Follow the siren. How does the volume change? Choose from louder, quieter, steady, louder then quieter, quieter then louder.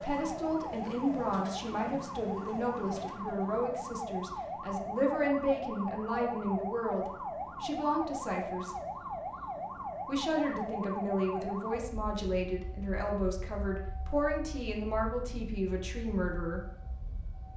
quieter.